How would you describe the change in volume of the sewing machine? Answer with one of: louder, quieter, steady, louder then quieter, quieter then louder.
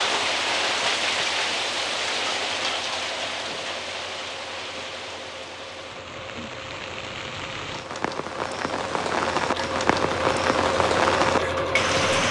louder.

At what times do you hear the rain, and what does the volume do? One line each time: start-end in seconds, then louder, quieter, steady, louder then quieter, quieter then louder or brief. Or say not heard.
0.0-12.2 quieter then louder.